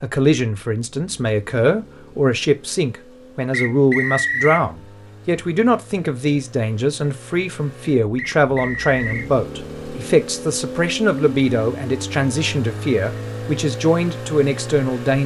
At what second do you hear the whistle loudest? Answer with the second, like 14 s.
4 s.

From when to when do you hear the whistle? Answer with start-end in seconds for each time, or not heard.
3.5-4.7, 8.2-9.3.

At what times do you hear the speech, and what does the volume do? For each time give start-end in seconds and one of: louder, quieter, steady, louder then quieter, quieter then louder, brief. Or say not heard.
0.0-15.2 steady.